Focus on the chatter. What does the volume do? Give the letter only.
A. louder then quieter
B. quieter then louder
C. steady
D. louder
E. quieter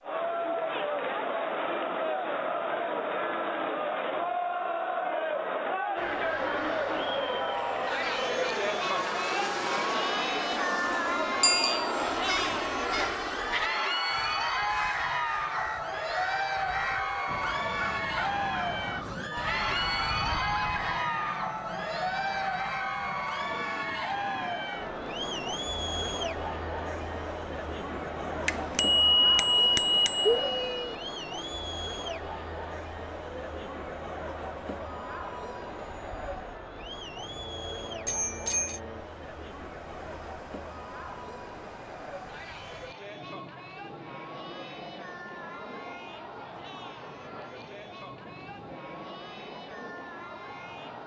E.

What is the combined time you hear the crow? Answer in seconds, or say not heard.
9 s.